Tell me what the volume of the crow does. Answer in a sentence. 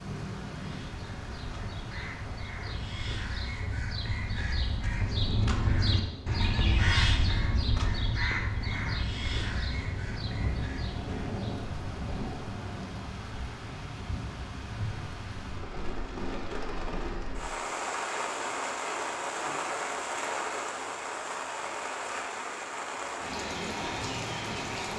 The volume of the crow goes up, then down.